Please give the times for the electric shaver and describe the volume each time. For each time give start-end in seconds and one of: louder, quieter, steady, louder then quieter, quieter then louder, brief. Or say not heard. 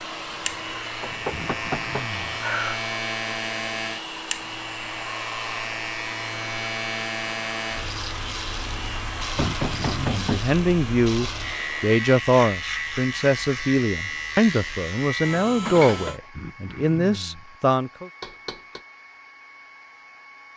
0.2-16.2 steady.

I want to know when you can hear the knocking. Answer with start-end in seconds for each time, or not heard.
1.0-2.8, 9.3-10.6, 18.2-18.8.